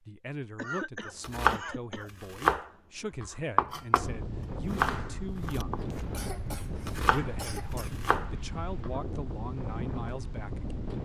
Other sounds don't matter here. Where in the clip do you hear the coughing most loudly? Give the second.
1 s.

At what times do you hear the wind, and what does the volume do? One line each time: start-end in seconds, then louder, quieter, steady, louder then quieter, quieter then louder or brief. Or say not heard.
4.0-10.9 steady.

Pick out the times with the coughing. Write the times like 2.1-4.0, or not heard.
0.6-2.1, 6.1-7.9.